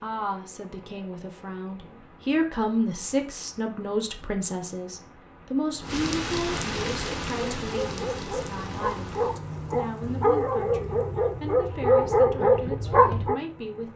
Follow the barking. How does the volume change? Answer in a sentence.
The volume of the barking goes up.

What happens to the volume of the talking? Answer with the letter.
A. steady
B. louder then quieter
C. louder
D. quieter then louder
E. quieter
E.